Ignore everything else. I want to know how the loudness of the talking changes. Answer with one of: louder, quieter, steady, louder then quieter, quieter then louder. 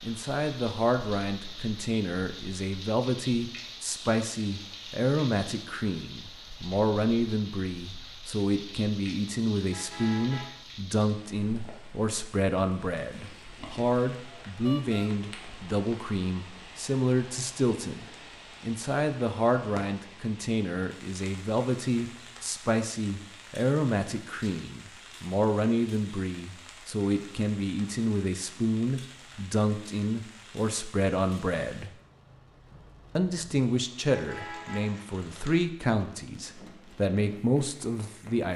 steady.